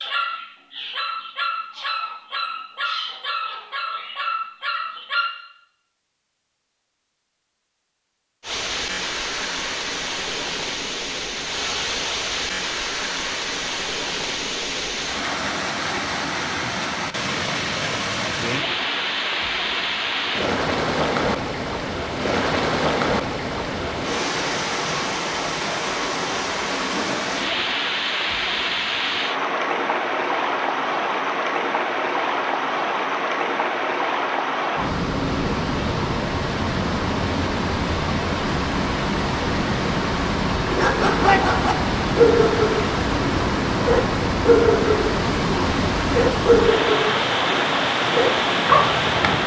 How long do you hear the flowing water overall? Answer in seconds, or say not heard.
41 s.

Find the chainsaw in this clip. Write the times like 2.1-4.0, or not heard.
not heard.